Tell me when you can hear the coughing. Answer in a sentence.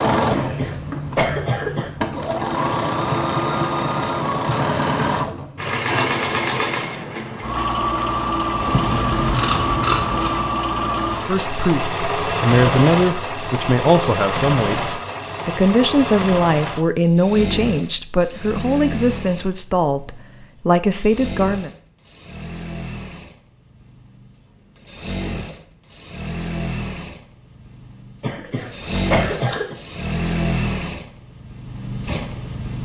The coughing can be heard from 0.2 to 1.9 s and from 28.2 to 29.8 s.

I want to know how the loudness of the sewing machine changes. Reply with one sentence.
The loudness of the sewing machine goes down, then up.